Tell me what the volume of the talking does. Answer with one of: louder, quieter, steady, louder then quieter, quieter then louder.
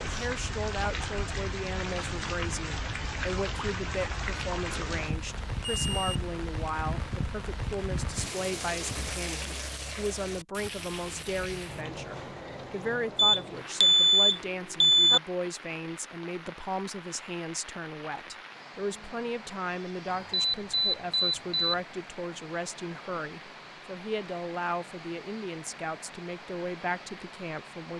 steady.